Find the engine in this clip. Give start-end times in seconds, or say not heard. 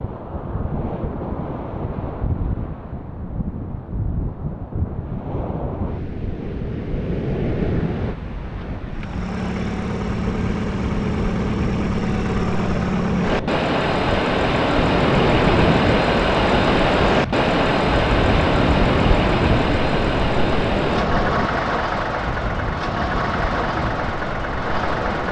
8.9-25.2.